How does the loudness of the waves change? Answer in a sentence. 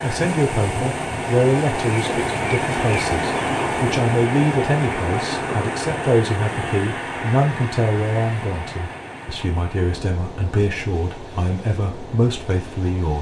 The loudness of the waves goes down.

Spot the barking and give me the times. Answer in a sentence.
The barking can't be heard in this clip.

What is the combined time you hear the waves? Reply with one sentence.
You can hear the waves for 13 seconds altogether.